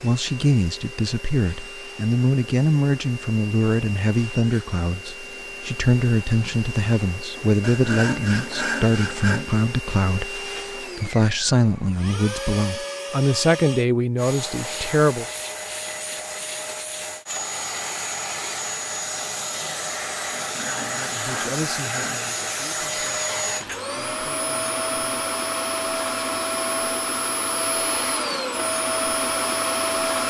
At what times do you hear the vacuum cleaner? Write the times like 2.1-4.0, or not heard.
0.0-30.2.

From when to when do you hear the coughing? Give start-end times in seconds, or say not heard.
not heard.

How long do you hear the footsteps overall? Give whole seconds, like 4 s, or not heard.
not heard.